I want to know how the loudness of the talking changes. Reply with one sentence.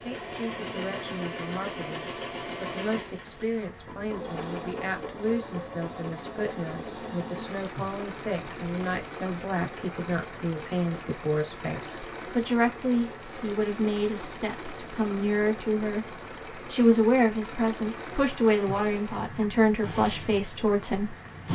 The loudness of the talking goes up.